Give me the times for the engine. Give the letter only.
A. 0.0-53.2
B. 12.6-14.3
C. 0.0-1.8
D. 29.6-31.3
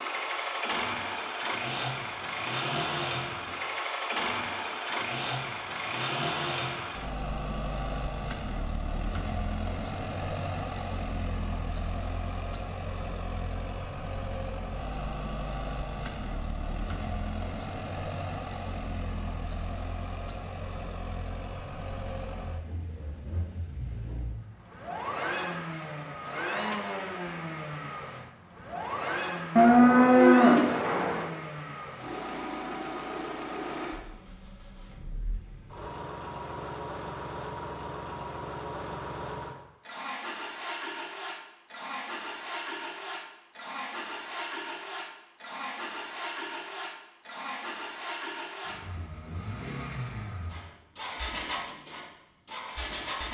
A.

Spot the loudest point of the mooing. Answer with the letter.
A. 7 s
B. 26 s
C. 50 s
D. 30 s
D.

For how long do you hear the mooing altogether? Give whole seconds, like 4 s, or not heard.
2 s.